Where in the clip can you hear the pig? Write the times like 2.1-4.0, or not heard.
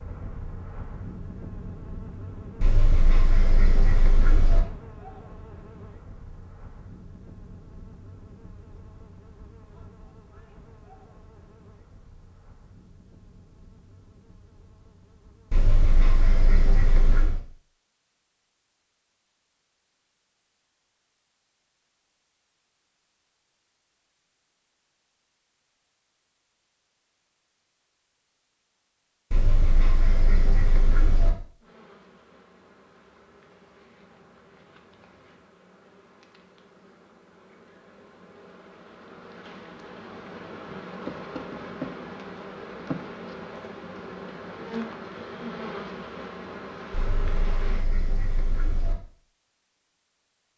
not heard.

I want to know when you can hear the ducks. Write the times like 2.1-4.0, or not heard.
2.6-4.6, 15.5-17.4, 29.3-31.3, 46.9-49.0.